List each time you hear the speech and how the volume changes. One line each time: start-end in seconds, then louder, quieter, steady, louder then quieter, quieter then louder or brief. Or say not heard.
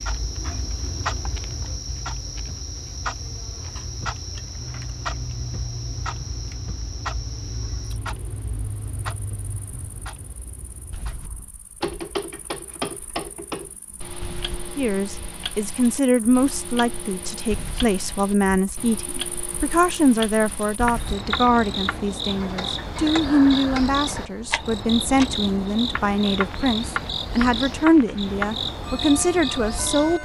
14.8-30.1 steady.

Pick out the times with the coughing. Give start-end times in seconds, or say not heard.
not heard.